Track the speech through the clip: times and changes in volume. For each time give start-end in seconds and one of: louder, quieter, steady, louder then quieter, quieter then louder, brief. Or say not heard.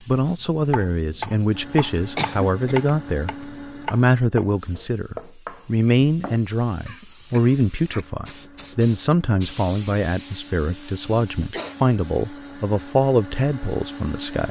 0.1-14.4 steady.